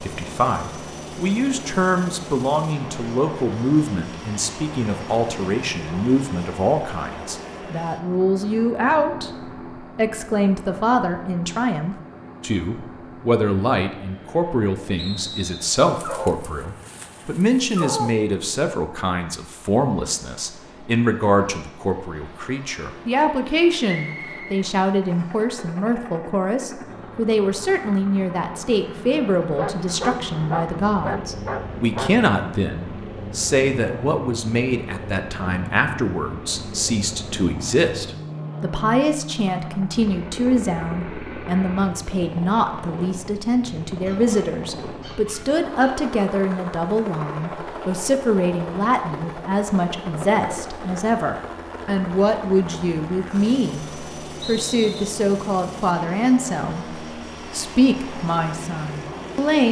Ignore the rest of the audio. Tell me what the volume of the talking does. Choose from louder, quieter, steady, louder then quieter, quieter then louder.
steady.